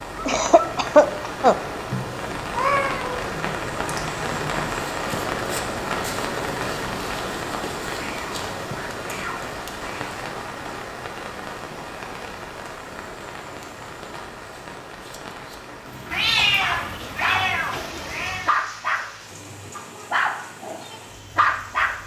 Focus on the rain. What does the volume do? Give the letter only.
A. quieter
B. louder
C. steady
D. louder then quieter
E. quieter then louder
A.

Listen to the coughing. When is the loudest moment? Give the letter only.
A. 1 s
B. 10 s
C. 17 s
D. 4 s
A.